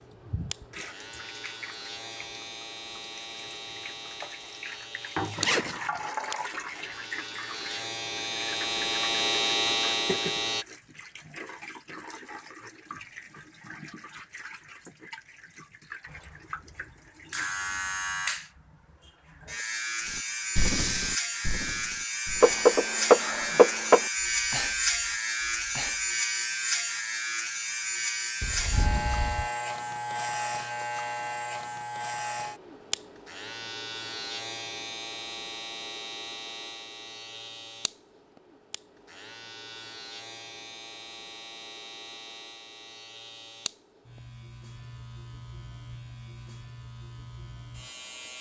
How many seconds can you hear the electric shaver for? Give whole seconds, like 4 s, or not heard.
43 s.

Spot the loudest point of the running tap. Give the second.
6 s.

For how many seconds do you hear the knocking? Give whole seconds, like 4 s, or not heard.
2 s.